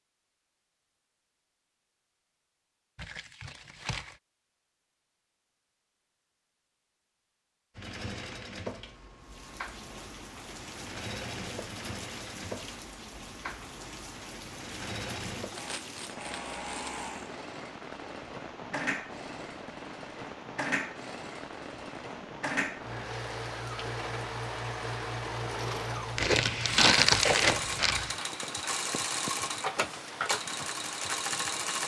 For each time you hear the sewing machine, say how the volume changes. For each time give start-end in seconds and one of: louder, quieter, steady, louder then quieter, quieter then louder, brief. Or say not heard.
7.8-31.8 louder.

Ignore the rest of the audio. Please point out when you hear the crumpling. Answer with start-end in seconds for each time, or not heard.
3.0-4.2, 15.5-17.1, 26.1-28.1.